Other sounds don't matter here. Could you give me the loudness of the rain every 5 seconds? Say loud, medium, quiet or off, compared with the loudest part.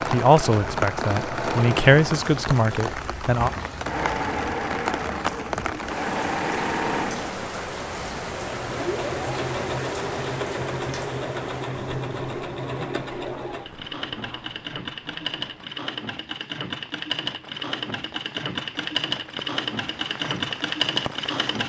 loud, loud, medium, quiet, medium.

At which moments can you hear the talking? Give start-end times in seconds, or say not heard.
0.1-3.5.